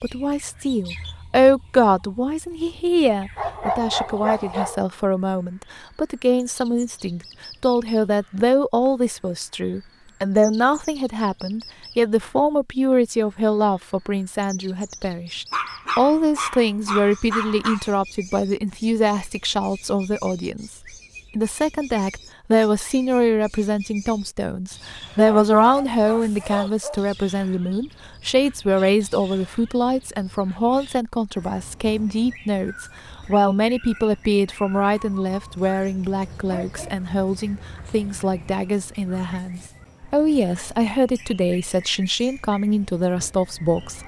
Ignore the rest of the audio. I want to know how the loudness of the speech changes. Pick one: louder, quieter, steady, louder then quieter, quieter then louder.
steady.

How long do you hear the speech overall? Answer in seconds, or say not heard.
43 s.